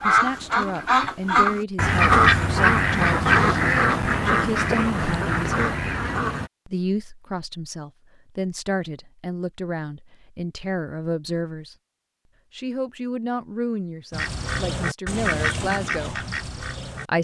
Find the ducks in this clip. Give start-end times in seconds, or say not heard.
0.0-6.5, 14.1-17.1.